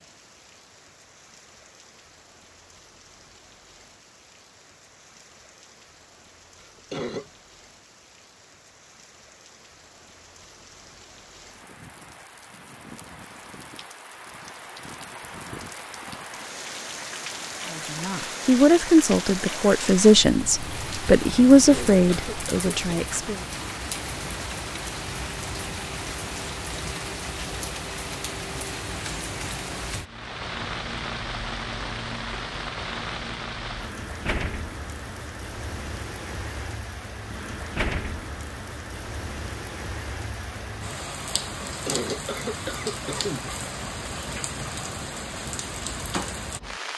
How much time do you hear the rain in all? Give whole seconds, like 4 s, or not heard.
47 s.